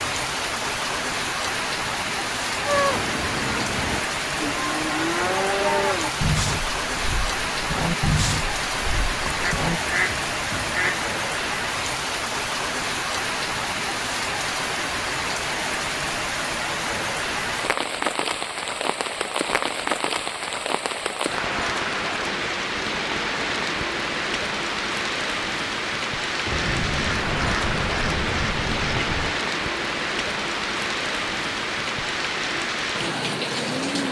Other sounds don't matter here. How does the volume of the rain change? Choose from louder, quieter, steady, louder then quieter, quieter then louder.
steady.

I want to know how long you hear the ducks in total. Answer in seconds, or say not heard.
5 s.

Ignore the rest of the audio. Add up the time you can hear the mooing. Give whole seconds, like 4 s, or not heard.
7 s.